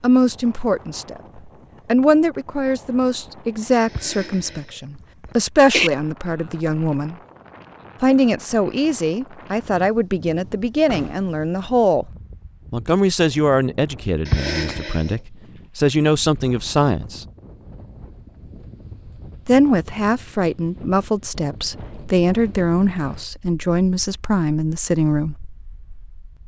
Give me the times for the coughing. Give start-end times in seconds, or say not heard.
4.0-4.6, 5.2-5.9, 14.2-15.2.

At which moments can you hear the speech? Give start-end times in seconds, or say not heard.
0.0-7.2, 8.0-12.1, 12.7-17.2, 19.4-25.4.